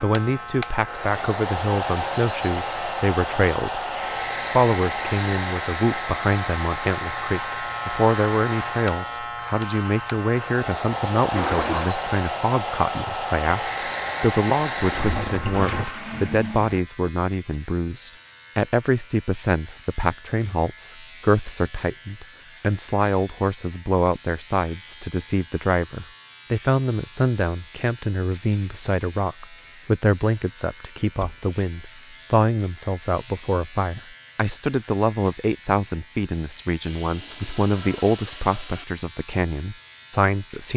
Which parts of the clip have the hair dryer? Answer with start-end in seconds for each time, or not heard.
0.0-15.6.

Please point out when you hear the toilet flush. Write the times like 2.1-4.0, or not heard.
11.3-11.9, 14.9-16.8, 36.9-38.9.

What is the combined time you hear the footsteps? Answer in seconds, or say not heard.
not heard.